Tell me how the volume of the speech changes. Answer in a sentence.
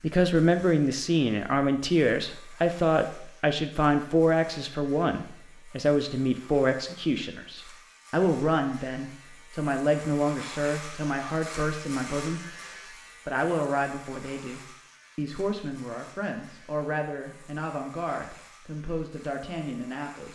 The volume of the speech goes down.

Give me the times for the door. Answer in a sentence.
You can't hear the door here.